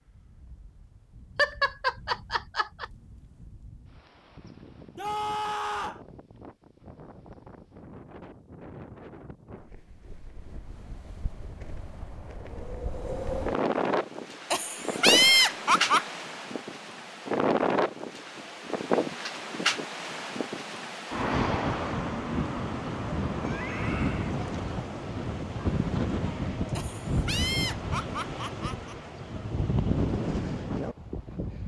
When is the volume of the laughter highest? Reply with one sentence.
The loudest moment of the laughter is at 15 seconds.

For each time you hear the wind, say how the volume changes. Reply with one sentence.
You can hear the wind from 0.0 to 31.6 s, getting louder.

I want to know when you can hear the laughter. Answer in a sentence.
You can hear the laughter from 1.4 to 2.9 s, from 14.5 to 16.1 s and from 26.8 to 28.9 s.